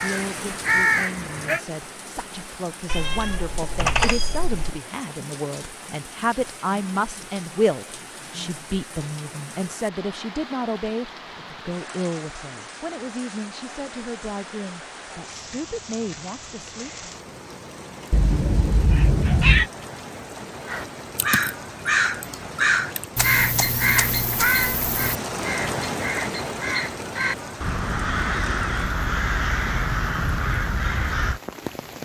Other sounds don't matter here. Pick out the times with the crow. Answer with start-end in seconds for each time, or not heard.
0.0-1.6, 20.6-31.4.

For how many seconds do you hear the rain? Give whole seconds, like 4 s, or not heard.
32 s.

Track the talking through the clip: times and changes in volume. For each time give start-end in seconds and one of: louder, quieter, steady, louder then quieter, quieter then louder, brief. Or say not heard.
0.0-17.1 louder then quieter.